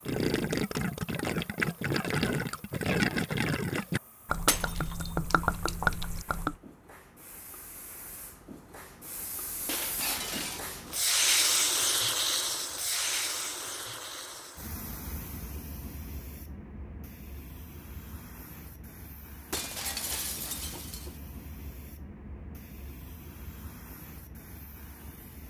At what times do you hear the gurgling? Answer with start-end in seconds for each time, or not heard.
0.1-6.5.